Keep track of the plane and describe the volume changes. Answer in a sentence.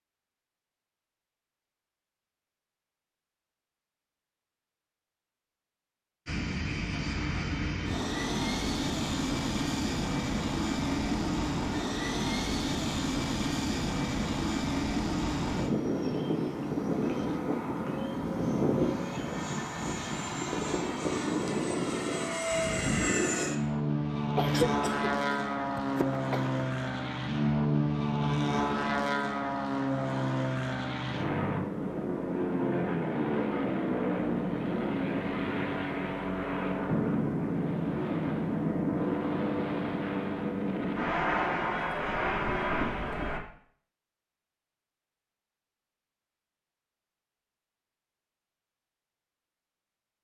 The loudness of the plane stays about the same.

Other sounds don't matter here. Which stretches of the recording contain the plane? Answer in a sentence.
The plane can be heard from 6.2 to 43.4 s.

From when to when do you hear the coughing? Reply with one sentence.
You can hear the coughing from 24.4 to 26.5 s.